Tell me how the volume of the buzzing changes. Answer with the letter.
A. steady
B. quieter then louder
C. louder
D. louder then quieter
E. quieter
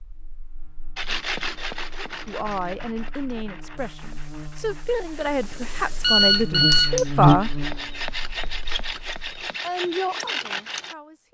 C.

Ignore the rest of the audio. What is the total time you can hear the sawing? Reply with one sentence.
The sawing can be heard for 10 seconds in total.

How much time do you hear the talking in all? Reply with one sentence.
The talking can be heard for 7 seconds in total.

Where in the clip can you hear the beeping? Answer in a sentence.
You can hear the beeping from 6.0 to 7.0 s.